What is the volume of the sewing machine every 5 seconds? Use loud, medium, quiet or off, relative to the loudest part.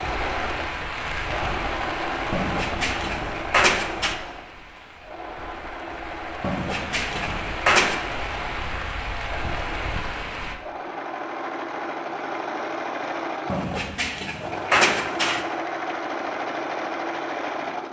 loud, medium, loud, loud.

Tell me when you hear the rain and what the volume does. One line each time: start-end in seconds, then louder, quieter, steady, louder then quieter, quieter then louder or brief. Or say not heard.
0.0-10.6 quieter then louder.